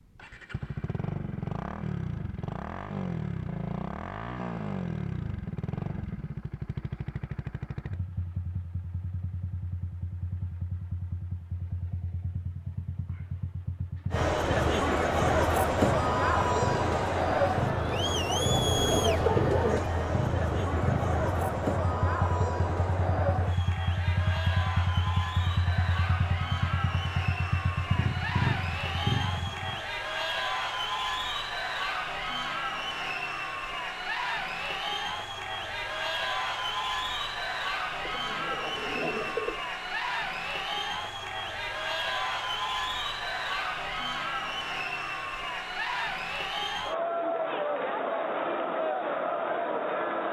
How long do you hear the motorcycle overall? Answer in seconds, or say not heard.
30 s.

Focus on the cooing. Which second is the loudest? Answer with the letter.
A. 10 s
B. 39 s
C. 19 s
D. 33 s
C.